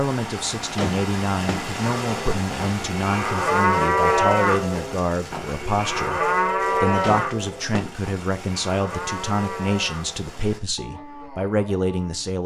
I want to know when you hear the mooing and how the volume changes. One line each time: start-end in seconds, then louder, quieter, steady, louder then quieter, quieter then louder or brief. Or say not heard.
1.8-12.4 quieter.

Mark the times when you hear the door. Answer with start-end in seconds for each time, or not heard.
0.8-1.7, 7.0-8.0.